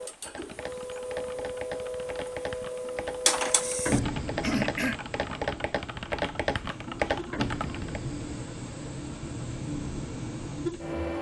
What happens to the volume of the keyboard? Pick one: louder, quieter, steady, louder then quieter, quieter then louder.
louder.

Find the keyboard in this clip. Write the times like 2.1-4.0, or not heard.
0.0-8.0.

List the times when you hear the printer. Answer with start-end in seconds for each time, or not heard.
0.0-11.1.